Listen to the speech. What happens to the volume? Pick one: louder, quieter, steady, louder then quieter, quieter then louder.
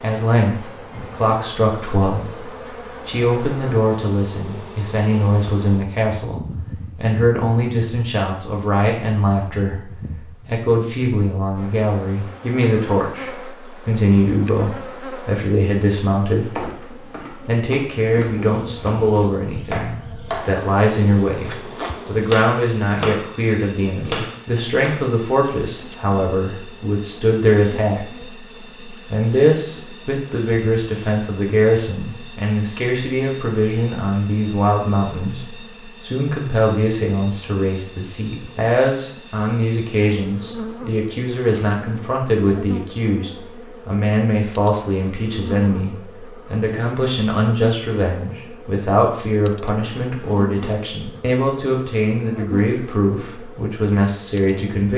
steady.